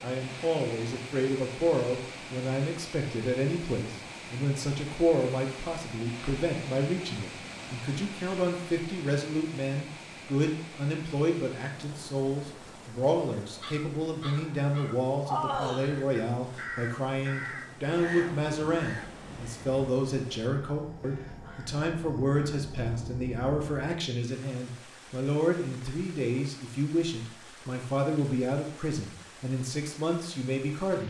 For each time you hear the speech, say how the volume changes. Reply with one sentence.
You can hear the speech from 0.0 to 31.0 s, at a steady volume.